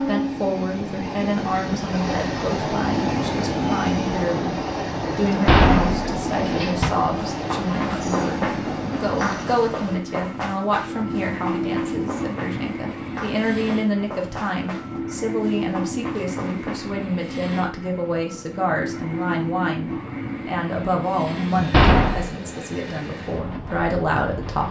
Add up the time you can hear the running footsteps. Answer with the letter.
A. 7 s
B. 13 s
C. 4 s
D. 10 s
D.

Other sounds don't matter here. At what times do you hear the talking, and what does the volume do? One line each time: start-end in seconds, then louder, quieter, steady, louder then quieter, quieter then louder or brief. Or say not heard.
0.0-24.6 steady.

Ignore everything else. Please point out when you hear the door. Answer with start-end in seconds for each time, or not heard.
5.5-7.0, 21.7-22.4.